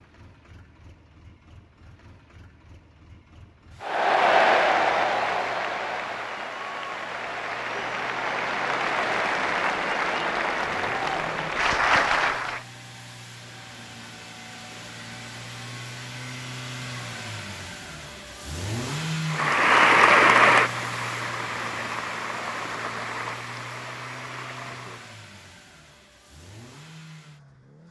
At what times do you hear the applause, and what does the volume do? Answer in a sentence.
You can hear the applause from 3.8 to 12.6 s, getting quieter then louder; and from 19.3 to 25.1 s, getting quieter.